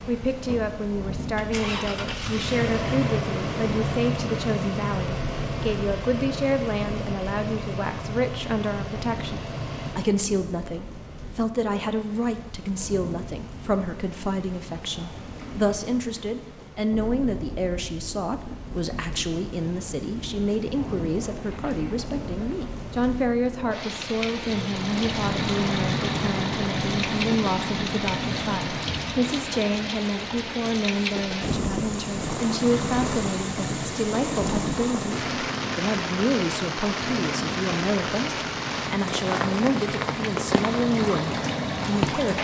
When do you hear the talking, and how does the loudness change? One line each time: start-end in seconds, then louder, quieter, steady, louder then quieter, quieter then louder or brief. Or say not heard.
0.1-42.4 steady.